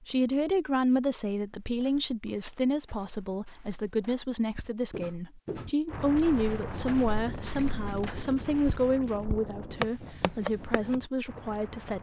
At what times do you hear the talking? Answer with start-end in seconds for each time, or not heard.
0.0-11.9.